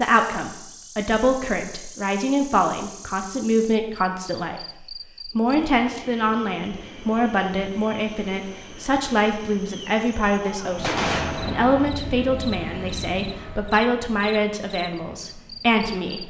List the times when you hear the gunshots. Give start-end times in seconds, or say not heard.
10.4-11.8.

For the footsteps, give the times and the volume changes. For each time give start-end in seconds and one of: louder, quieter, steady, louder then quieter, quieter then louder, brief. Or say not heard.
not heard.